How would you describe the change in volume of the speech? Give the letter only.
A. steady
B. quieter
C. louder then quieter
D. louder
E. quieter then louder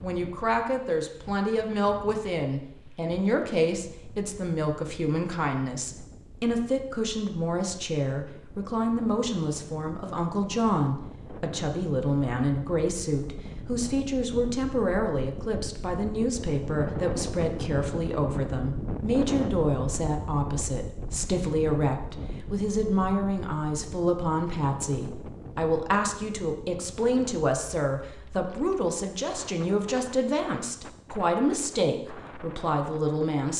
A.